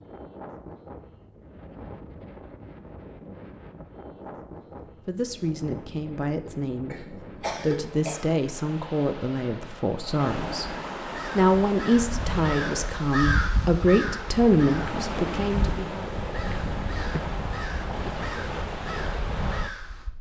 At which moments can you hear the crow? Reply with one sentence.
You can hear the crow from 11.1 to 20.1 s.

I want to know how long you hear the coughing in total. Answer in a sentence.
The coughing can be heard for 2 seconds in total.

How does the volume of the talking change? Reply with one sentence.
The volume of the talking goes up.